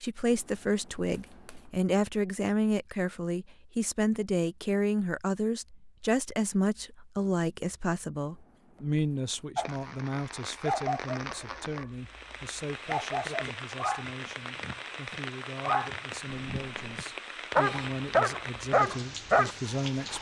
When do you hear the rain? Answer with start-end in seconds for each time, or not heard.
9.6-20.1.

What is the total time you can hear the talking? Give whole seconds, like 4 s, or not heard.
20 s.